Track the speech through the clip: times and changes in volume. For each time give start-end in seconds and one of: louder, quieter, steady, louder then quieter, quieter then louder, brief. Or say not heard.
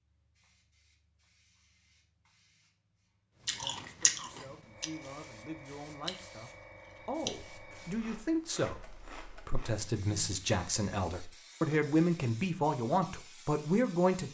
3.6-14.2 louder.